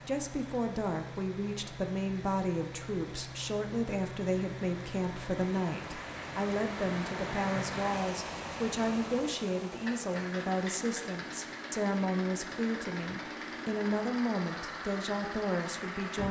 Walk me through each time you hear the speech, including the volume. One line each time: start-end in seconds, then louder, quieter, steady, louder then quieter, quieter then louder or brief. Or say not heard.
0.1-16.2 steady.